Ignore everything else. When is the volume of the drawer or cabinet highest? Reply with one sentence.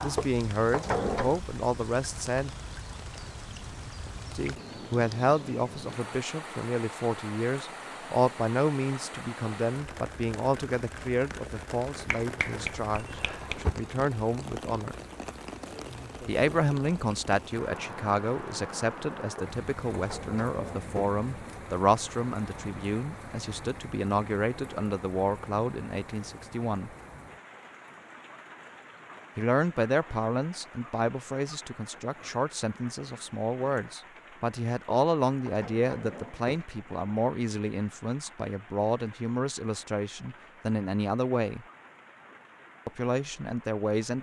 The loudest moment of the drawer or cabinet is at 1 second.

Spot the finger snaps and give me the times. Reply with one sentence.
The finger snaps can be heard from 12.1 to 13.6 s.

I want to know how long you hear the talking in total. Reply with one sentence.
The talking can be heard for 37 seconds in total.